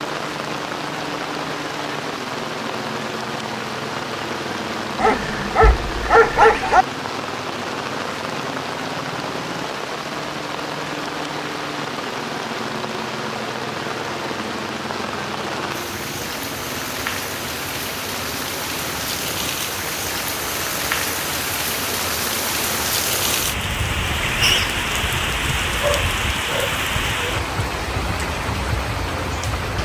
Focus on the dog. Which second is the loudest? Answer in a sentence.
The loudest moment of the dog is at 6 seconds.